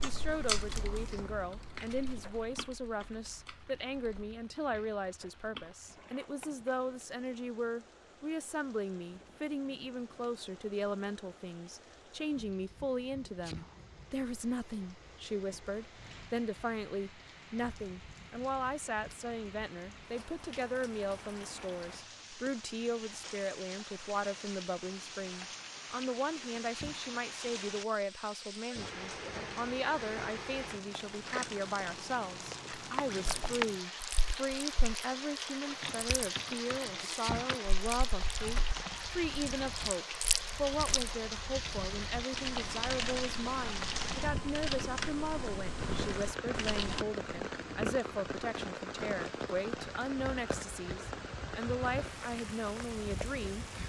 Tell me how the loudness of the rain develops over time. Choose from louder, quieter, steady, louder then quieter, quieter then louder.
louder.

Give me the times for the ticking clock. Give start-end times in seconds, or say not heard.
not heard.